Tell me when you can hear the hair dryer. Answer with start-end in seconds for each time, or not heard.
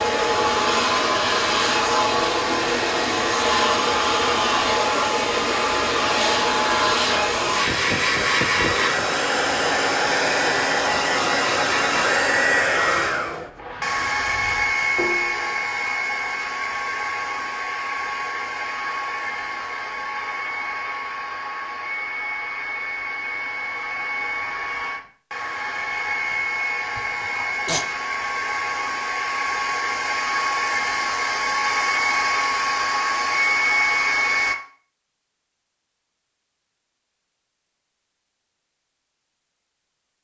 0.0-34.5.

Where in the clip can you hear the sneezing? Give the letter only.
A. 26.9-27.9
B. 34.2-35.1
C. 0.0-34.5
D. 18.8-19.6
A.